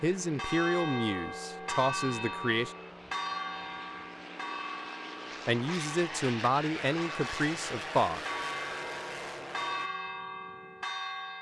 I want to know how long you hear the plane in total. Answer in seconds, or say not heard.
10 s.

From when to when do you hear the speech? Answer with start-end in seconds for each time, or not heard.
0.0-2.8, 5.5-8.2.